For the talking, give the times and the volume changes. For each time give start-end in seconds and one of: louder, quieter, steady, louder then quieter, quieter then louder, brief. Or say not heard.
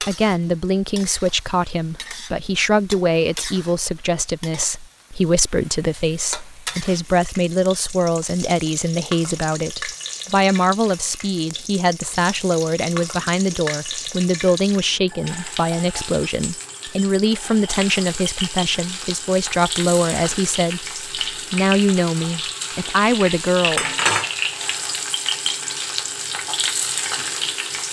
0.0-23.9 steady.